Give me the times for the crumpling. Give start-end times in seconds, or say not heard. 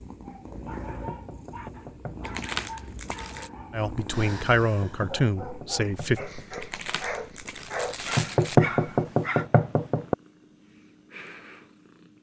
2.2-3.5, 6.6-8.6.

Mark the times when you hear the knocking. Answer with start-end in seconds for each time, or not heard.
0.7-2.3, 4.8-6.6, 8.2-10.2.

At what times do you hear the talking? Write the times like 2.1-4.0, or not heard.
3.7-6.2.